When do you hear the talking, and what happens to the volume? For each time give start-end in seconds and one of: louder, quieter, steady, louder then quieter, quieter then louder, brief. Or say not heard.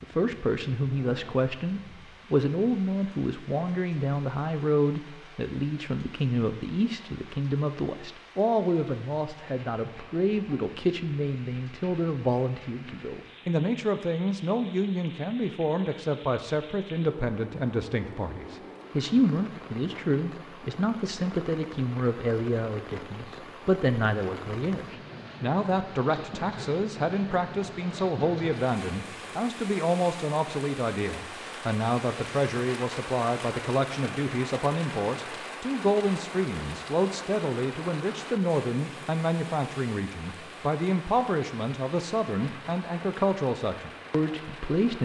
0.0-45.0 steady.